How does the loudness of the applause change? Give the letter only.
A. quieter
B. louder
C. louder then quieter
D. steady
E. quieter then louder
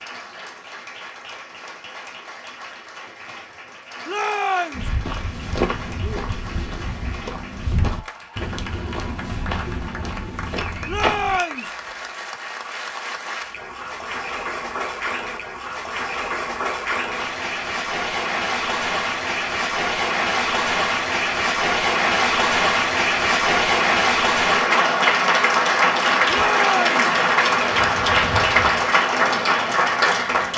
B.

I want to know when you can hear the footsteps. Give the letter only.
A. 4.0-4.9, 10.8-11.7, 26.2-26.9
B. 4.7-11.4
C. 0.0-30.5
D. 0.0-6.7
B.